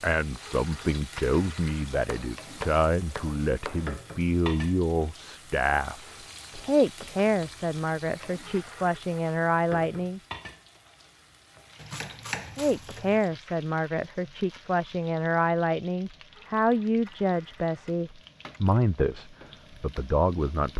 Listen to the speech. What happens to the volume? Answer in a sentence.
The volume of the speech stays about the same.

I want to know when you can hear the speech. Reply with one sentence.
The speech can be heard from 0.0 to 10.2 s and from 12.6 to 20.7 s.